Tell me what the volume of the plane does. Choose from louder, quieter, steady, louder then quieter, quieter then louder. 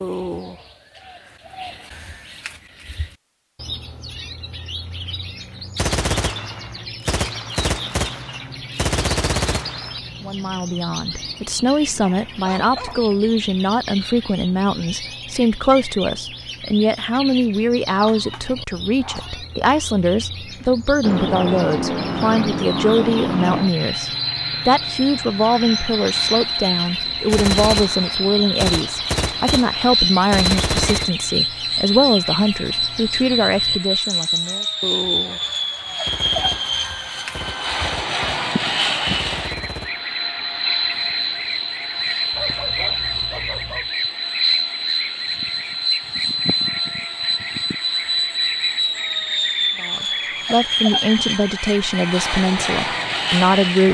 steady.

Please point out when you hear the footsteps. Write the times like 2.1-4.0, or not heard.
not heard.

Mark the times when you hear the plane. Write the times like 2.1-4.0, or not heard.
21.0-53.8.